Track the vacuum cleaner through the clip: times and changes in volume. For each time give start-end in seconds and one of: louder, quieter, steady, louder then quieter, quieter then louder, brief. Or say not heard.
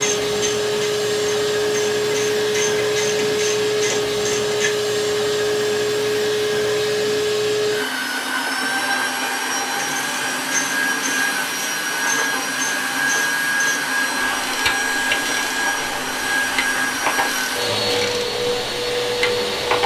0.0-19.8 steady.